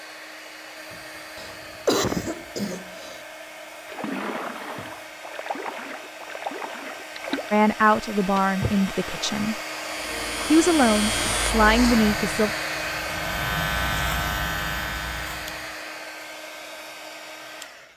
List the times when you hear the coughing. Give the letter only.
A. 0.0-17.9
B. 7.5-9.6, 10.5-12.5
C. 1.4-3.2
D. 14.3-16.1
C.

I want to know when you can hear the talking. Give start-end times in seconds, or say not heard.
7.5-9.6, 10.5-12.5.